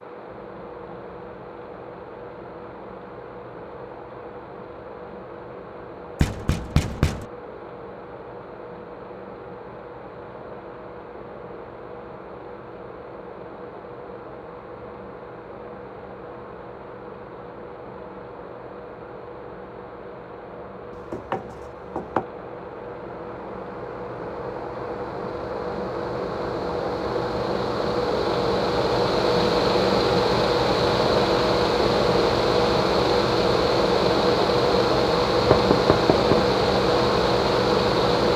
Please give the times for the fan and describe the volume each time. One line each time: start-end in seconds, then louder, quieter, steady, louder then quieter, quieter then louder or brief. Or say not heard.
0.0-38.3 louder.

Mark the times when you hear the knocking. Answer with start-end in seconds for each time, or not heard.
6.2-7.2, 20.9-22.2, 35.5-36.5.